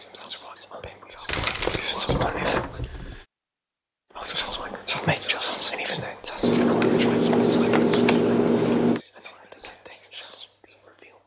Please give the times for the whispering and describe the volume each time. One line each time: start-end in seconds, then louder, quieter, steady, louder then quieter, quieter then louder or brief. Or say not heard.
0.0-2.8 brief
4.2-11.2 quieter.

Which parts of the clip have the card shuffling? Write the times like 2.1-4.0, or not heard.
1.2-3.2, 6.4-9.0.